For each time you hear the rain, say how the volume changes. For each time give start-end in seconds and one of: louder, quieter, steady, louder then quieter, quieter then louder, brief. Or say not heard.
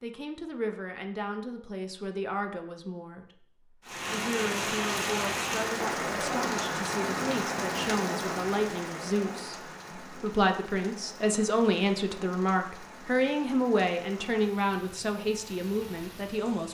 3.9-16.7 quieter.